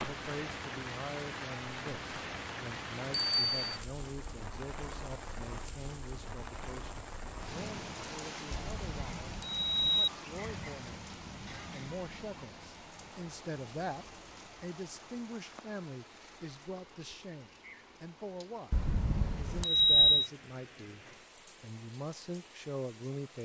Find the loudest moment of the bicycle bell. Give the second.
20 s.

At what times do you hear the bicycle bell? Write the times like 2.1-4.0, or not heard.
3.1-3.8, 8.5-10.1, 18.7-20.2.